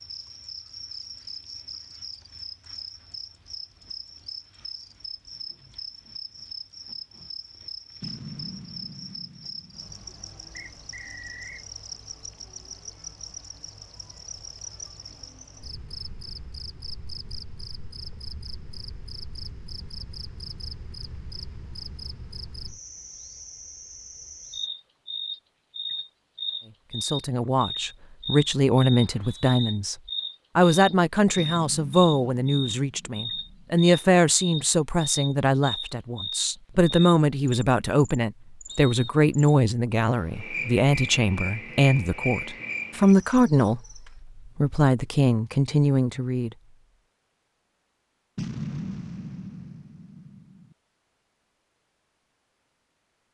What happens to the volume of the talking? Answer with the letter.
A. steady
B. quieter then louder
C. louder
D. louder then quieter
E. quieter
A.